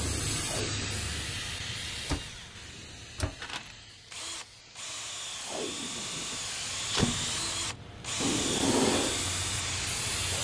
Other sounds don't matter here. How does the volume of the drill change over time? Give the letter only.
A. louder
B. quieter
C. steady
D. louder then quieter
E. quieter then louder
A.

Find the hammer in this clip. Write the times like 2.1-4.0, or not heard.
not heard.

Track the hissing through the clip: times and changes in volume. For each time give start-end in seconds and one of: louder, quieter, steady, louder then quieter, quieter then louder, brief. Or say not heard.
0.0-10.3 quieter then louder.